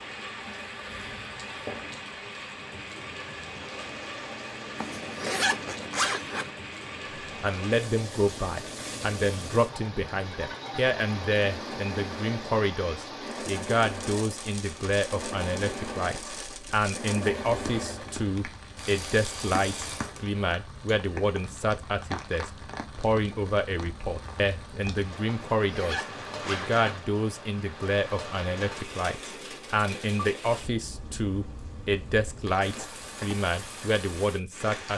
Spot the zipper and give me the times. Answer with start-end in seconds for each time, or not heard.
4.8-6.5, 25.5-26.9.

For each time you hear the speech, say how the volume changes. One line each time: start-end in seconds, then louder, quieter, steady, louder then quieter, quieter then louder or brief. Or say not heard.
7.4-34.9 steady.